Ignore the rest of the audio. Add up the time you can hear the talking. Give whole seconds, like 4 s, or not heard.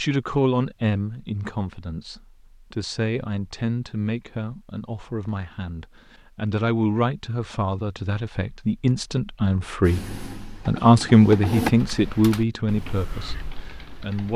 14 s.